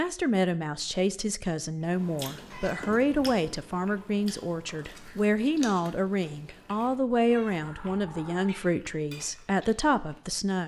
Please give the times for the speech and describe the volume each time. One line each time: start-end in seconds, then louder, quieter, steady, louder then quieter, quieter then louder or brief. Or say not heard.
0.0-10.6 steady.